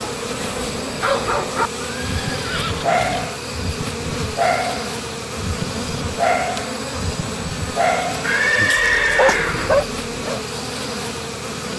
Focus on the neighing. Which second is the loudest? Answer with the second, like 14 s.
9 s.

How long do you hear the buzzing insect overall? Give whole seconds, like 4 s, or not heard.
12 s.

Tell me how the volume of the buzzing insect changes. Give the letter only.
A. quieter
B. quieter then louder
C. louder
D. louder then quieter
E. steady
E.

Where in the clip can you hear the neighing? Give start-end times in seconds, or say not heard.
1.9-3.3, 8.2-9.8.